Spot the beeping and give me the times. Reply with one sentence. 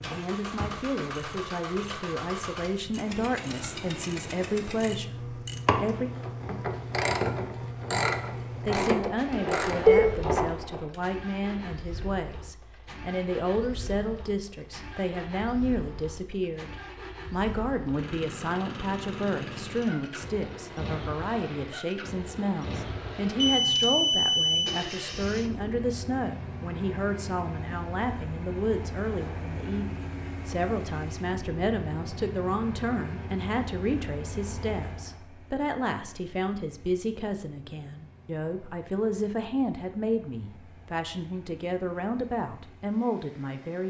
The beeping can be heard from 9.3 to 10.3 s and from 23.4 to 24.8 s.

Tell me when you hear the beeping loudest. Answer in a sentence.
The volume of the beeping peaks at 10 seconds.